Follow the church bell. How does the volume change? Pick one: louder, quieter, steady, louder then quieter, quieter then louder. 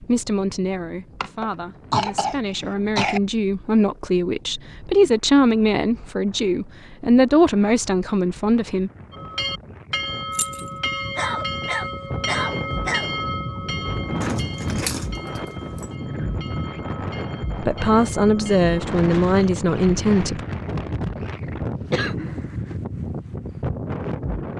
quieter.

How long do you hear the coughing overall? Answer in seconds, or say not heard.
5 s.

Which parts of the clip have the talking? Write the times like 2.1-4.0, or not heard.
0.0-8.9, 17.6-20.4.